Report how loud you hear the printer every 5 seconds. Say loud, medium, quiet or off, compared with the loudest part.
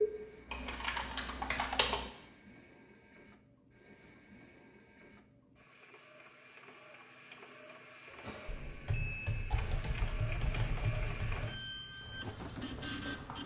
quiet, medium, loud.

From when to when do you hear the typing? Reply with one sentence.
The typing can be heard from 0.0 to 2.1 s and from 8.2 to 13.4 s.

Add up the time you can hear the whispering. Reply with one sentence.
The whispering can't be heard in this clip.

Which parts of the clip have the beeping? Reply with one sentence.
You can hear the beeping from 8.1 to 9.3 s.